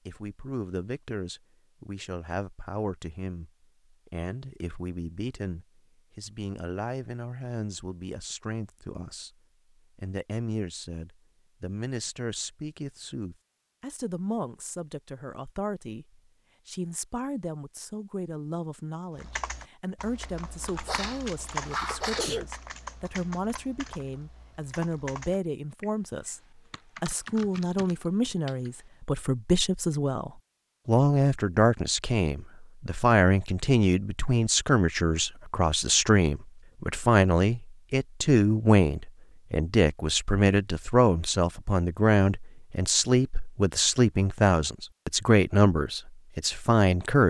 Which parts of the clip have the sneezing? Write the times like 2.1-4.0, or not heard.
20.9-22.4.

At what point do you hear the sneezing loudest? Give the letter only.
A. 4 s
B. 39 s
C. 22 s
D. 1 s
C.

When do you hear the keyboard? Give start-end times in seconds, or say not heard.
19.1-28.8.